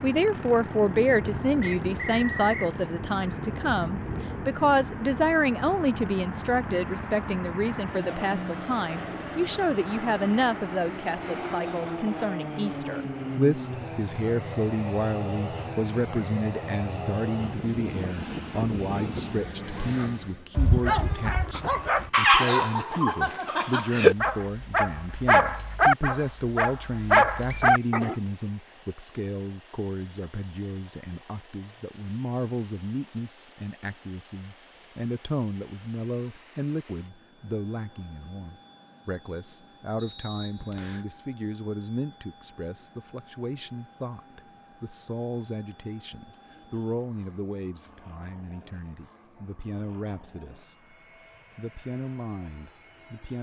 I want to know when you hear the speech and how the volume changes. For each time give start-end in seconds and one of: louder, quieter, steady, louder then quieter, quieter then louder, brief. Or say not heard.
0.0-51.0 quieter
51.5-53.3 brief.